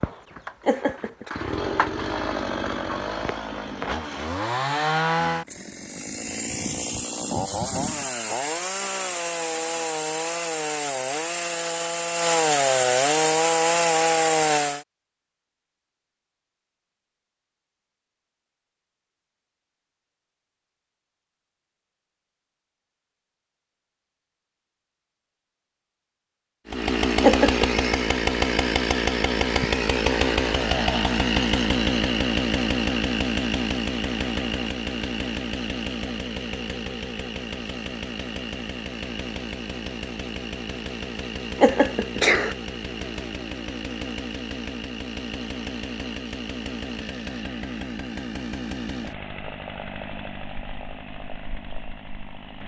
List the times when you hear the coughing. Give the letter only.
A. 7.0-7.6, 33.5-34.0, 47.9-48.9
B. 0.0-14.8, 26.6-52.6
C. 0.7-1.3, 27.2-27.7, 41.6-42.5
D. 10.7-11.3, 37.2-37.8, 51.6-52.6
C.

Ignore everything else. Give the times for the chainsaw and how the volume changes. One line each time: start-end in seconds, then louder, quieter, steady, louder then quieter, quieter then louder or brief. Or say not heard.
0.0-14.8 louder
26.6-52.6 quieter.